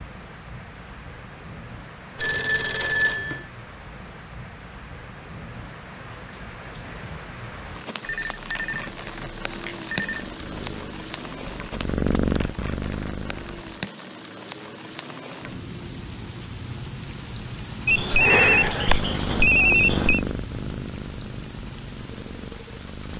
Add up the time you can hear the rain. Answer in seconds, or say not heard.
23 s.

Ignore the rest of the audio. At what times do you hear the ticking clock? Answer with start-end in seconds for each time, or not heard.
not heard.